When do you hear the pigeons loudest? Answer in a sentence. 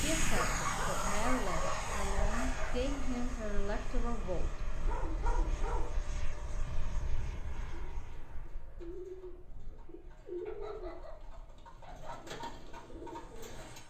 The loudest moment of the pigeons is at 10 seconds.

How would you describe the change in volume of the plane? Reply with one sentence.
The volume of the plane goes down.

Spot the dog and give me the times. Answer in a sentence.
The dog can be heard from 0.3 to 2.9 s, from 4.8 to 6.0 s and from 10.4 to 12.2 s.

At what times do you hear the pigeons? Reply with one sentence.
You can hear the pigeons from 7.7 to 13.8 s.